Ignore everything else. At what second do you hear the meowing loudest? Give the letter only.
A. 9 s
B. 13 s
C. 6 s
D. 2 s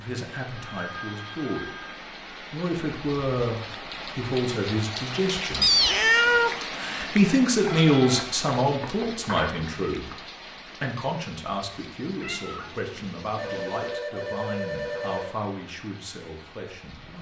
C.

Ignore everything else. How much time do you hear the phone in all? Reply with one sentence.
The phone can be heard for 6 seconds in total.